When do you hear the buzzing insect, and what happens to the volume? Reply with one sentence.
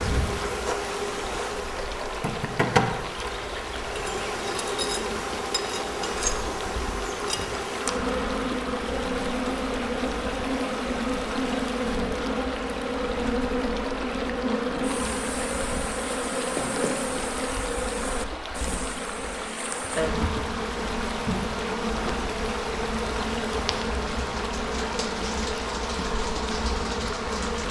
You can hear the buzzing insect from 0.0 to 27.6 s, at a steady volume.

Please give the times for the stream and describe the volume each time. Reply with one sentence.
You can hear the stream from 0.0 to 27.6 s, at a steady volume.